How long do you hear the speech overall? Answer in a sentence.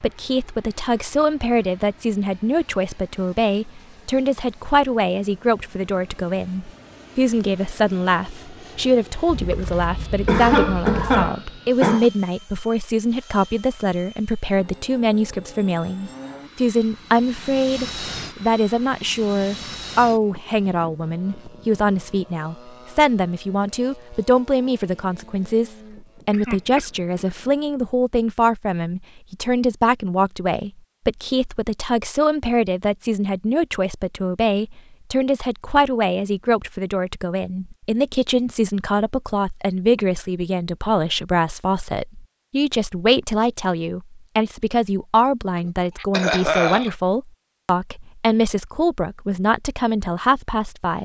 The speech can be heard for 51 seconds in total.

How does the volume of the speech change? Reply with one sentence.
The volume of the speech stays about the same.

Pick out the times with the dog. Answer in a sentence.
The dog can't be heard in this clip.